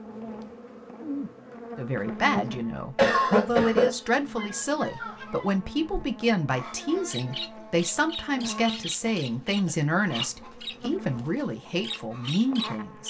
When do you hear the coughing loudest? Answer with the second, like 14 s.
3 s.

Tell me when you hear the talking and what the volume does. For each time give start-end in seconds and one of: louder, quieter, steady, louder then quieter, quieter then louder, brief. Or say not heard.
1.8-13.0 steady.